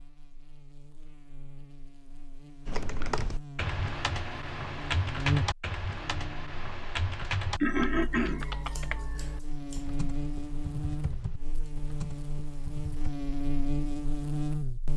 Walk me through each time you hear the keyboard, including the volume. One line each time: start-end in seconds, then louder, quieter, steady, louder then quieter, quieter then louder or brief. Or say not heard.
2.6-13.1 quieter.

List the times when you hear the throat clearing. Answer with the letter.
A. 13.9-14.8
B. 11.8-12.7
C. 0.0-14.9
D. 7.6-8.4
D.